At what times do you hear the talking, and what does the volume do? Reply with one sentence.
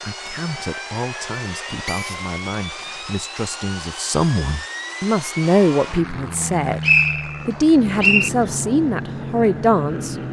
You can hear the talking from 0.0 to 6.8 s, getting louder; and briefly from 7.5 to 10.2 s.